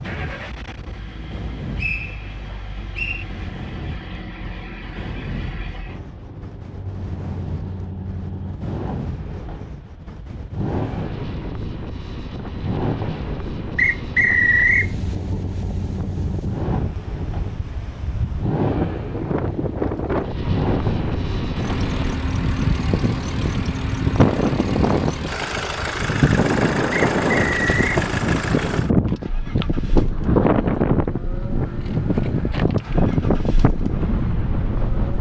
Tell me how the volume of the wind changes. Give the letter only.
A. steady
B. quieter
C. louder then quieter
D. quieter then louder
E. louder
E.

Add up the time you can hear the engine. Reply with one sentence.
The engine can be heard for 35 seconds in total.